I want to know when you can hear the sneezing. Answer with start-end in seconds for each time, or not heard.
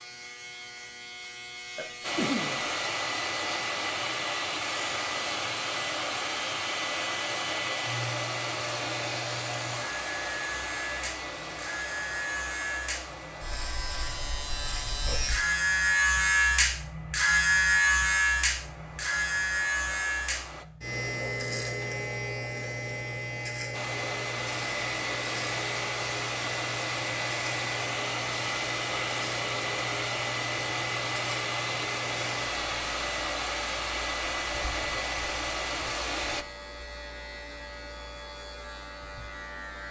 1.8-2.6.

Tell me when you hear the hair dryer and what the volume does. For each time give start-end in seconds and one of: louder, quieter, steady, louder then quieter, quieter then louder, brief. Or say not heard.
2.0-20.6 quieter
23.7-36.5 steady.